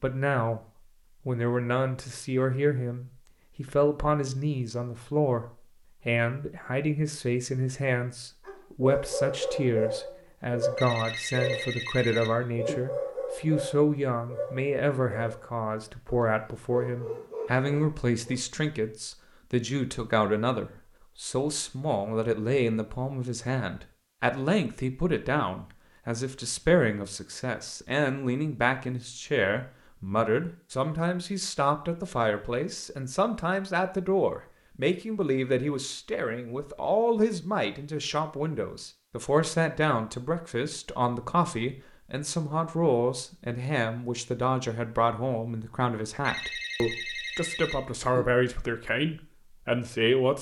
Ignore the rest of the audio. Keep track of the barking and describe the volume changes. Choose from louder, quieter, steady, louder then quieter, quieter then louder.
quieter.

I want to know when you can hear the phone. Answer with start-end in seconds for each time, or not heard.
10.8-12.8, 46.2-48.2.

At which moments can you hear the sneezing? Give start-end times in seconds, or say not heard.
not heard.